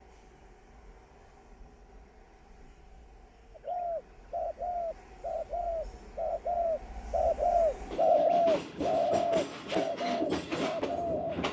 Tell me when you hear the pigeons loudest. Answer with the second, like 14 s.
8 s.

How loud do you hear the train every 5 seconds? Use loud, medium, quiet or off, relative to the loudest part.
quiet, medium, loud.